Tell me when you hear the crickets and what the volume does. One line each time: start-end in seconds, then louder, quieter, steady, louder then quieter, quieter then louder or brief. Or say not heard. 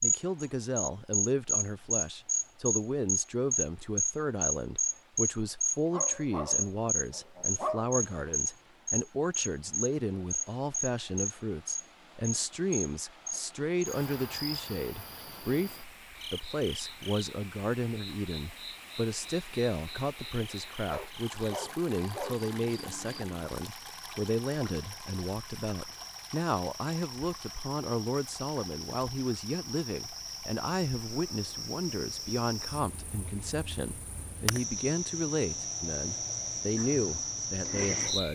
0.0-38.3 quieter then louder.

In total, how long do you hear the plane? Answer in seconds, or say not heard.
not heard.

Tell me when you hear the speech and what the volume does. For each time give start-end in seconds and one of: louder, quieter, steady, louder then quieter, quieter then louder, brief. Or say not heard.
0.0-38.3 steady.